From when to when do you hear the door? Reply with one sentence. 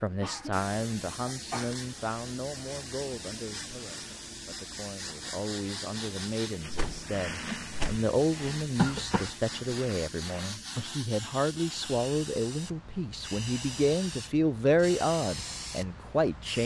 You can hear the door from 6.7 to 8.0 s.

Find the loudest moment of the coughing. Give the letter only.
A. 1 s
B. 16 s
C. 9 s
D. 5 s
C.